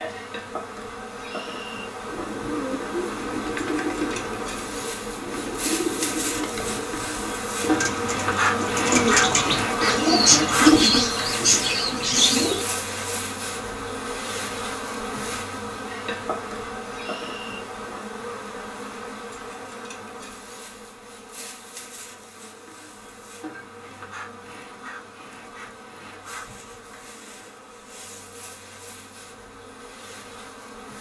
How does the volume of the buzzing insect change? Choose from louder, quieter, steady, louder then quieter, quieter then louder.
louder then quieter.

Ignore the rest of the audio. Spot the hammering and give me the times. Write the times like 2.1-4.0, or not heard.
not heard.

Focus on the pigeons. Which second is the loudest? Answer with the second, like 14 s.
11 s.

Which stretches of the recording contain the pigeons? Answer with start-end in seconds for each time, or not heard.
2.0-12.7.